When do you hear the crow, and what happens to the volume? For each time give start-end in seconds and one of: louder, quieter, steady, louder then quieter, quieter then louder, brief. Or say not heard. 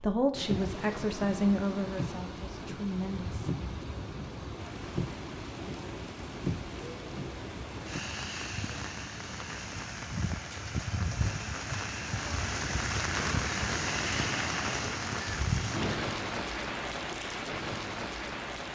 not heard.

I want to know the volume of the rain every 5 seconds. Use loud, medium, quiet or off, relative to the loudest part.
medium, medium, loud, loud.